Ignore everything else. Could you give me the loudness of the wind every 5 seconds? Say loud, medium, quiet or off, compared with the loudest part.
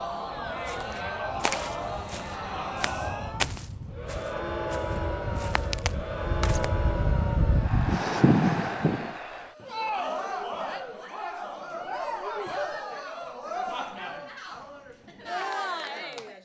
quiet, loud, off, off.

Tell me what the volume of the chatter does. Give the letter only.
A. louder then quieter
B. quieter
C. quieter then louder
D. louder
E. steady
E.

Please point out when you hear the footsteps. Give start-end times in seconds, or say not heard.
0.7-6.7.